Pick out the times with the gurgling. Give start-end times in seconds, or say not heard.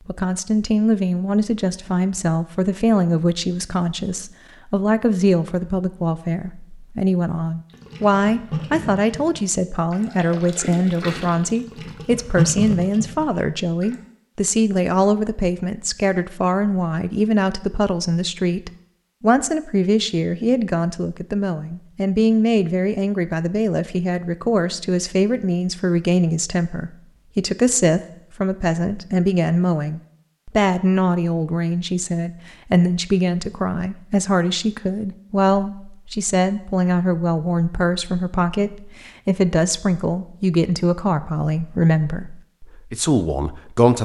7.7-13.9.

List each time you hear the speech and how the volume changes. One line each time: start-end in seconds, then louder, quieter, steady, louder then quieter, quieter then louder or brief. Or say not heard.
0.1-43.9 steady.